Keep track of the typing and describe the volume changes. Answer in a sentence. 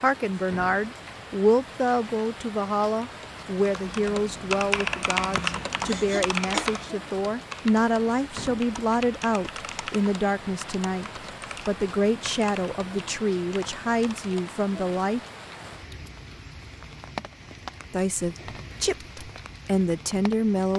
The volume of the typing goes down.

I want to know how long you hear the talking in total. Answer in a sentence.
The talking can be heard for 18 seconds in total.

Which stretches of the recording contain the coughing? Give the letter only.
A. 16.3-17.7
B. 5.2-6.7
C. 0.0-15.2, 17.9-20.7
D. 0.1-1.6
B.